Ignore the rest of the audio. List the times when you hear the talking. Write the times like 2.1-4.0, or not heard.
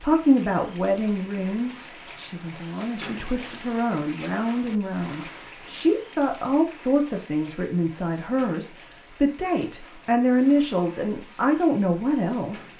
0.0-12.7.